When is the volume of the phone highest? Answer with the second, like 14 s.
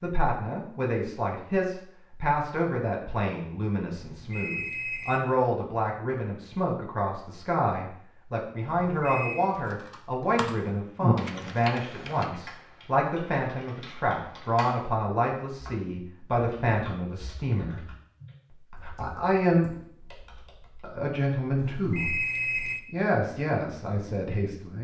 22 s.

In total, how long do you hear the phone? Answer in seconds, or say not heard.
3 s.